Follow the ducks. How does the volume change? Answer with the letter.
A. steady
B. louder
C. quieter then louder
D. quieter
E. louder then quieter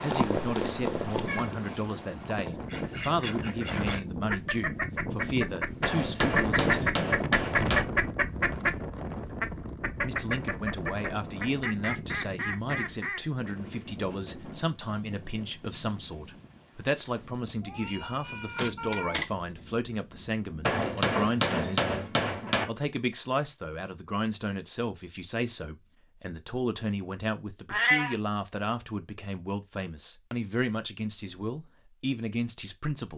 E.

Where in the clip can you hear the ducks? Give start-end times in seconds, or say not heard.
2.6-13.2.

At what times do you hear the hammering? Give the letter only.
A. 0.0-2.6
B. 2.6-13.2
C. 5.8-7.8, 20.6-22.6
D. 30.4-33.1
C.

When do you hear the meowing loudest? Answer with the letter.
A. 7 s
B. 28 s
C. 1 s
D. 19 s
B.